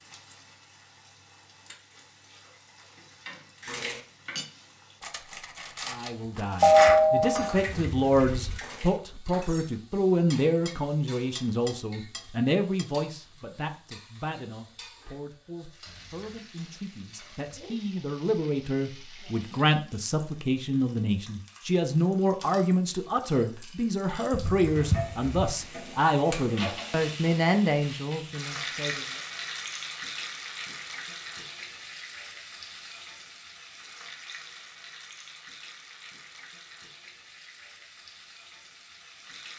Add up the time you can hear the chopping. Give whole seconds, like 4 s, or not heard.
not heard.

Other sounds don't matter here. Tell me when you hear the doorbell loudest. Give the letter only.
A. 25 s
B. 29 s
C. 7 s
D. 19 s
C.